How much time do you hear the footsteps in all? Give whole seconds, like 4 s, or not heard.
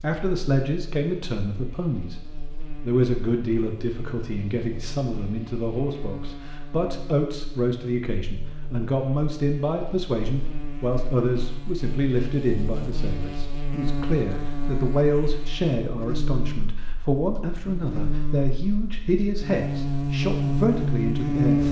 not heard.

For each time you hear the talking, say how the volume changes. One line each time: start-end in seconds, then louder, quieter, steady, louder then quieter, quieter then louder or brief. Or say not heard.
0.0-2.1 brief
2.8-21.6 steady.